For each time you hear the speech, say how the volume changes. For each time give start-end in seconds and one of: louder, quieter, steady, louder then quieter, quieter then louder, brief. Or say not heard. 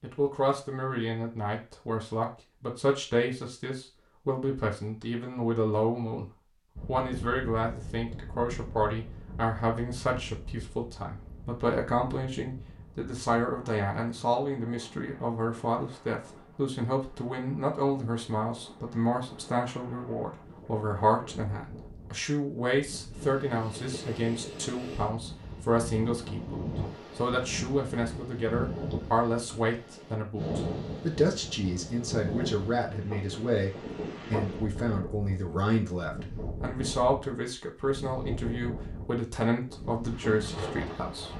0.0-6.2 steady
6.8-41.3 steady.